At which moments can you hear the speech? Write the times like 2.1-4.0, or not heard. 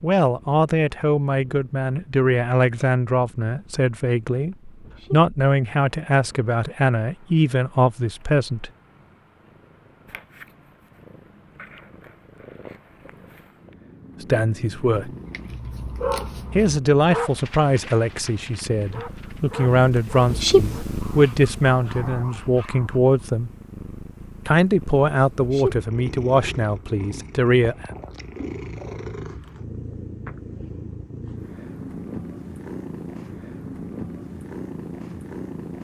0.0-8.7, 14.2-15.1, 16.5-23.5, 24.4-27.9.